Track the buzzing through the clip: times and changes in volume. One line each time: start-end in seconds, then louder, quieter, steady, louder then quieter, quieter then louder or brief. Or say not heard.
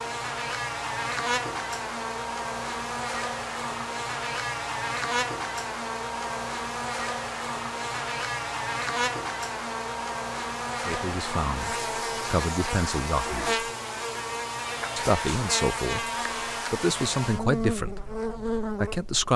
0.0-19.3 steady.